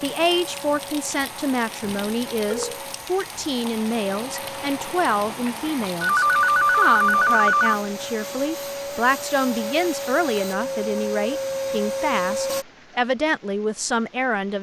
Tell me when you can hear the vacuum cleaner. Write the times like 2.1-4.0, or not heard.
0.1-12.7.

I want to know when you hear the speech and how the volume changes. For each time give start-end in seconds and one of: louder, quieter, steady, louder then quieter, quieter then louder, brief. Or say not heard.
0.0-14.5 steady.